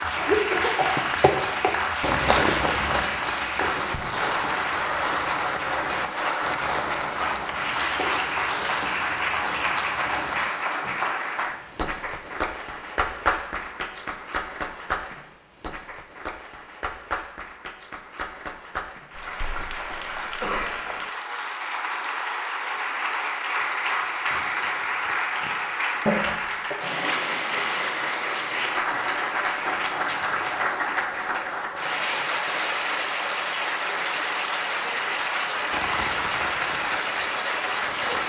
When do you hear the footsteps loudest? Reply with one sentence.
The volume of the footsteps peaks at 2 seconds.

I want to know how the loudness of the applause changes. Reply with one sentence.
The loudness of the applause goes down, then up.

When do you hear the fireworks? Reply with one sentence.
You can hear the fireworks from 35.7 to 38.2 s.